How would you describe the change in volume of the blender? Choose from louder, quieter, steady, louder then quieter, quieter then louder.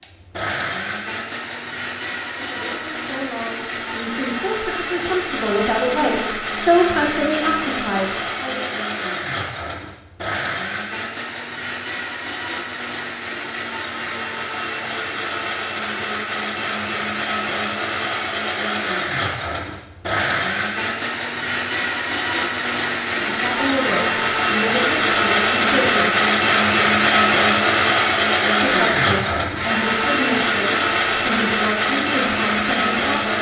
louder.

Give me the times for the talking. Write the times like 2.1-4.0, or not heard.
2.4-8.7, 23.3-26.1, 28.6-33.3.